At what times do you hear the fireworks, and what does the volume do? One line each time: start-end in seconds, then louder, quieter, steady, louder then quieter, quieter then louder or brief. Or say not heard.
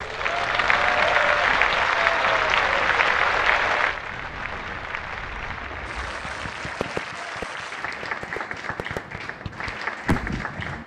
6.0-10.8 quieter then louder.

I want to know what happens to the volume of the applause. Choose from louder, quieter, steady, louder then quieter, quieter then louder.
quieter.